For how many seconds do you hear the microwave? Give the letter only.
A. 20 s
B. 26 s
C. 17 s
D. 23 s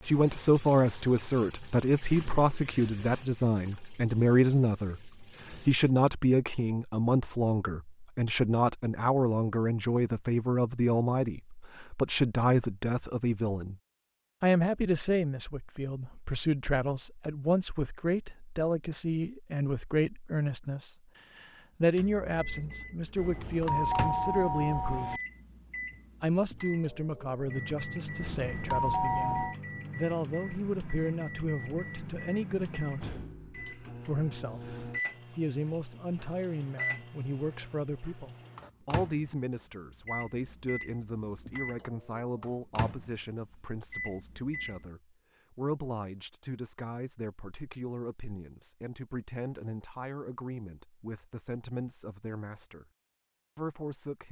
D.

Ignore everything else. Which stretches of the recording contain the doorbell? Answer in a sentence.
The doorbell can be heard from 23.1 to 25.2 s and from 28.2 to 29.6 s.